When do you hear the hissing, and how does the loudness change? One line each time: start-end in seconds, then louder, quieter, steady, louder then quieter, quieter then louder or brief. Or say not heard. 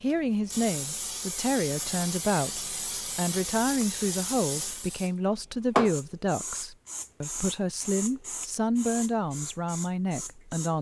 0.0-10.7 louder then quieter.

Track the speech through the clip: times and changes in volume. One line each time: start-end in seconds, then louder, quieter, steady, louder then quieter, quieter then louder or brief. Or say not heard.
0.0-10.7 steady.